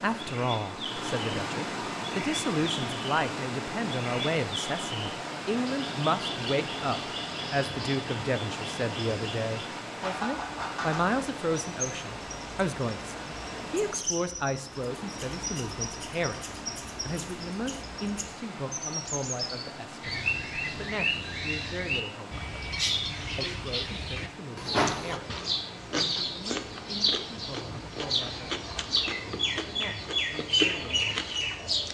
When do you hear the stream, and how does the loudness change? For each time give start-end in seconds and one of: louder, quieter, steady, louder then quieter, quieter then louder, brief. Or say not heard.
0.0-31.8 quieter.